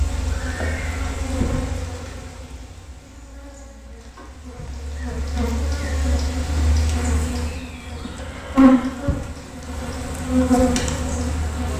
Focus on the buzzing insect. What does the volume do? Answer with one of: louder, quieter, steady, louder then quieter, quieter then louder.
quieter then louder.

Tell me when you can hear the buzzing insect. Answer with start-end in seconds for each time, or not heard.
0.0-11.7.